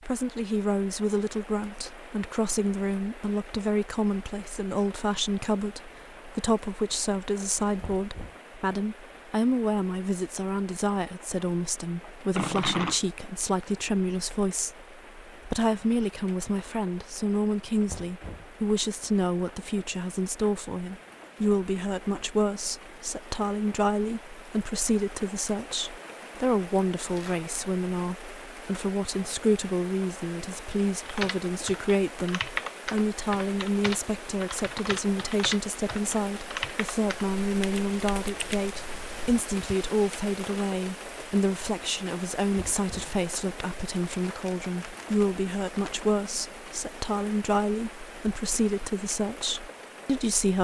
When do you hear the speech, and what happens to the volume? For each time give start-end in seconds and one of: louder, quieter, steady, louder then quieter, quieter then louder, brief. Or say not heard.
0.1-14.8 steady
15.4-50.6 steady.